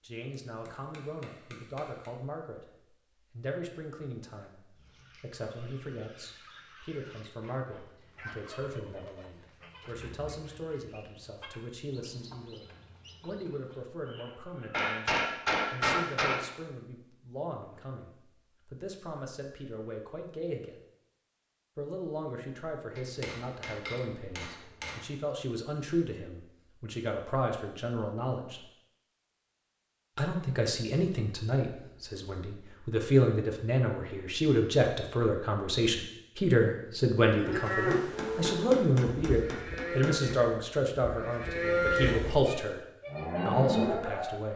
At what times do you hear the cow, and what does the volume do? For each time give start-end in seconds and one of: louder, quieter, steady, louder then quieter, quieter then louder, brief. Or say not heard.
37.3-44.4 quieter then louder.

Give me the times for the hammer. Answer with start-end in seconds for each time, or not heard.
0.3-2.1, 14.7-16.4, 22.9-25.0, 37.6-40.4.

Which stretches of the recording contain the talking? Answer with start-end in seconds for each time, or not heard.
0.0-2.6, 3.3-20.8, 21.8-28.6, 30.1-42.8, 43.5-44.5.